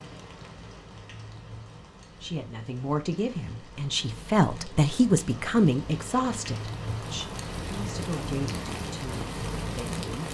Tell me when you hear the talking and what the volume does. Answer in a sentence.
The talking can be heard from 2.2 to 10.3 s, getting louder then quieter.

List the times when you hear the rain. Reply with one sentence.
The rain can be heard from 0.0 to 10.3 s.